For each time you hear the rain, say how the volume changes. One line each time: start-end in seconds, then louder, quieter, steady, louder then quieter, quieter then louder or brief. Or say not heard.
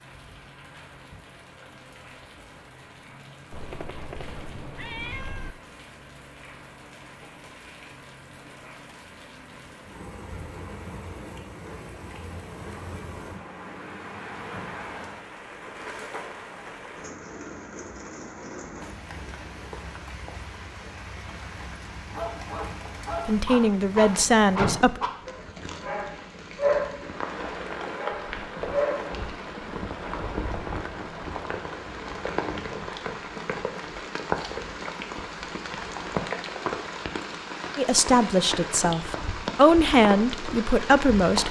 0.0-41.4 louder.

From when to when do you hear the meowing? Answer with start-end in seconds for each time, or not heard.
3.5-5.5.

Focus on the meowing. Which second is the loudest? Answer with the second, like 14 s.
5 s.